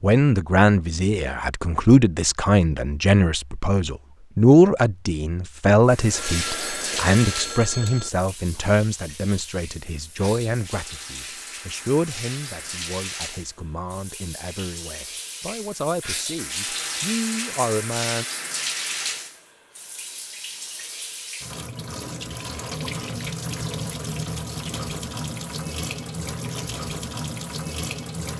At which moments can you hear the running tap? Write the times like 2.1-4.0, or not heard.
5.8-28.3.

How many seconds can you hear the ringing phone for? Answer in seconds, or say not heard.
2 s.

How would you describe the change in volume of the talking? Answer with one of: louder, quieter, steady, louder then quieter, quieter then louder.
quieter.